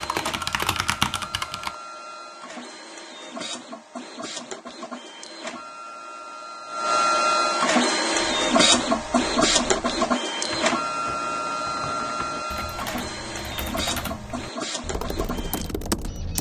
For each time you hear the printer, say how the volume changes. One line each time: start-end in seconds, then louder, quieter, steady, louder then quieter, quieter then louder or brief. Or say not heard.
0.0-16.3 louder then quieter.